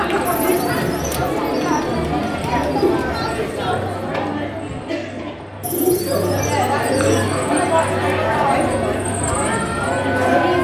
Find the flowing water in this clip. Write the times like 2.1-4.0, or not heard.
not heard.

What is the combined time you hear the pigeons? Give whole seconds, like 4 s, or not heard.
5 s.